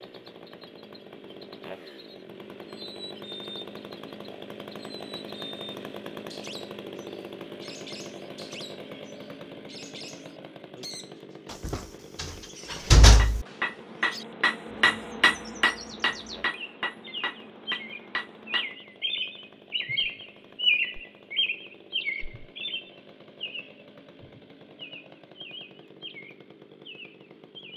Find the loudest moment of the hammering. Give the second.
15 s.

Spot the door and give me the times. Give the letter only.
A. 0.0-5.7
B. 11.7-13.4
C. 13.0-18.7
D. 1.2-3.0
B.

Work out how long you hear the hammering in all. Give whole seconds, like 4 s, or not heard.
6 s.